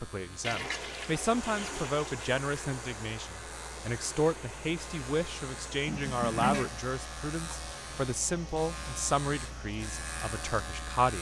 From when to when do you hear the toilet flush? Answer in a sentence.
The toilet flush can be heard from 0.4 to 2.4 s and from 5.8 to 6.8 s.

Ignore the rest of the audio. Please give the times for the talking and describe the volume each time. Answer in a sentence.
The talking can be heard from 0.0 to 11.1 s, at a steady volume.